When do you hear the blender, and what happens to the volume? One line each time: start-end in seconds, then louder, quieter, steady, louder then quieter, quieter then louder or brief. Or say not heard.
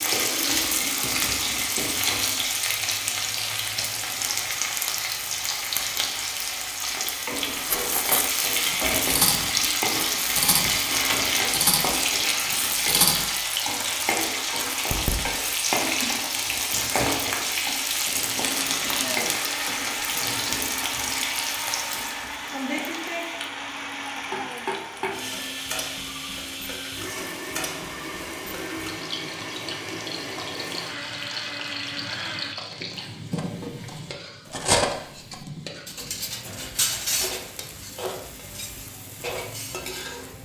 18.4-32.5 steady.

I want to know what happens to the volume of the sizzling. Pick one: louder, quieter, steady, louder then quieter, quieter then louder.
quieter.